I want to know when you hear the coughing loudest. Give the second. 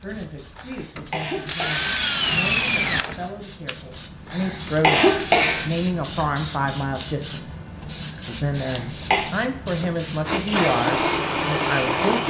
5 s.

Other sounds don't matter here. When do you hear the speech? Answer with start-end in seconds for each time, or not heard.
0.0-7.5, 8.2-12.2.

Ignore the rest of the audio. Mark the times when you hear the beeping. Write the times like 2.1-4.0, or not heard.
not heard.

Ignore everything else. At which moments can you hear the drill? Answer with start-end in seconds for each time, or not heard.
0.2-5.7, 10.2-12.2.